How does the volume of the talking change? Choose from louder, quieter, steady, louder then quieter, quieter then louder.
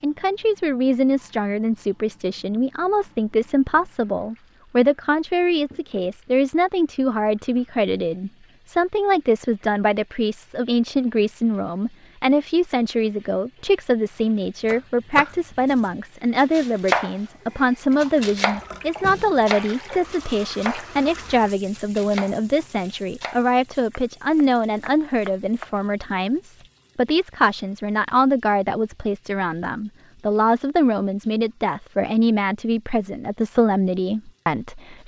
steady.